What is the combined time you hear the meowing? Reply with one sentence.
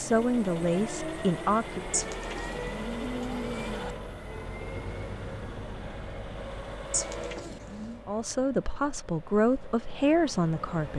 You can hear the meowing for 3 seconds altogether.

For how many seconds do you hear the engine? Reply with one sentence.
You can hear the engine for 11 seconds altogether.